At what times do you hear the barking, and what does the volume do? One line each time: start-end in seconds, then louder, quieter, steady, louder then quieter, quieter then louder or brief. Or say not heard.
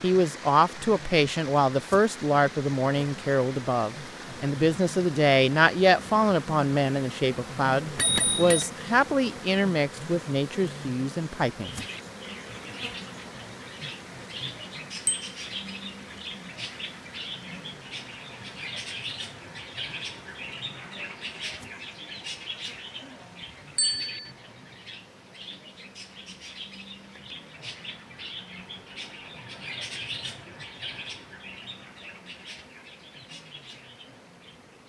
not heard.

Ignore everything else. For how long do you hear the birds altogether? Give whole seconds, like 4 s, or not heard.
23 s.